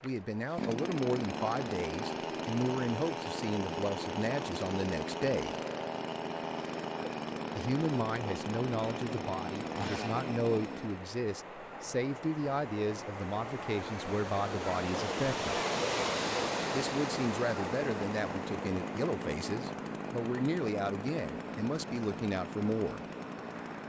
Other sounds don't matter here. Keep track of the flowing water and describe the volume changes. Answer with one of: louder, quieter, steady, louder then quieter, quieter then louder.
louder then quieter.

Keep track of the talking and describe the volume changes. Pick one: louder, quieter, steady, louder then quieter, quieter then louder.
steady.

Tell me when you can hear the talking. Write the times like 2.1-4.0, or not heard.
0.0-5.5, 7.5-15.6, 16.7-23.1.